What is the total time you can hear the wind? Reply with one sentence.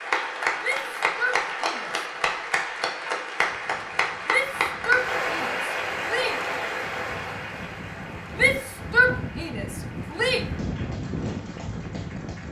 The wind can be heard for 9 seconds in total.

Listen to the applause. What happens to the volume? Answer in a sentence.
The loudness of the applause goes down.